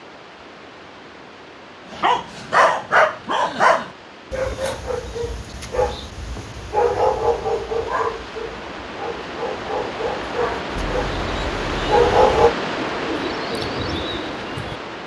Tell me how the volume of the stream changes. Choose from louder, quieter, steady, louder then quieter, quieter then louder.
louder.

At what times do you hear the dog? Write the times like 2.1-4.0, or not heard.
1.9-12.6.